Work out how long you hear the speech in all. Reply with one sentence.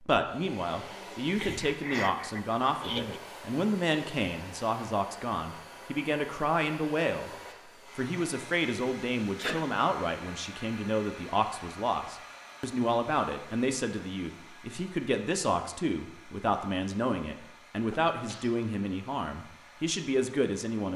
You can hear the speech for 20 seconds altogether.